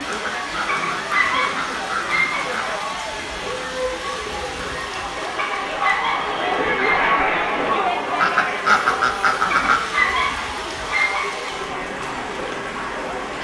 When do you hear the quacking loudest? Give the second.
9 s.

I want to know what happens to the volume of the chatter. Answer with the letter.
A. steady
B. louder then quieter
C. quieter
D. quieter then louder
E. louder
B.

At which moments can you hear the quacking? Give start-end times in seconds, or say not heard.
0.1-2.8, 8.2-9.9.